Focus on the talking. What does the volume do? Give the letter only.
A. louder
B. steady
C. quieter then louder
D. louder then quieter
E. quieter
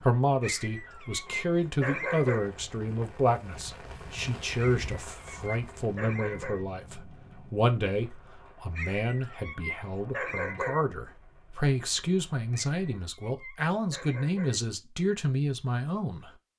B.